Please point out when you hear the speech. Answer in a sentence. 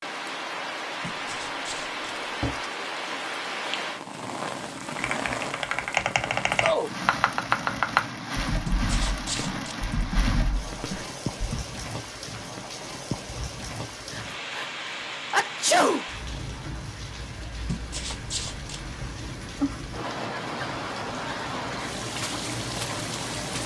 You can't hear the speech here.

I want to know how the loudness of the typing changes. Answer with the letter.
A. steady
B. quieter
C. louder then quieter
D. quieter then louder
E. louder
C.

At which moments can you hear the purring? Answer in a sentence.
You can't hear the purring here.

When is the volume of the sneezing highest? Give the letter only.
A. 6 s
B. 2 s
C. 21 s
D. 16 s
D.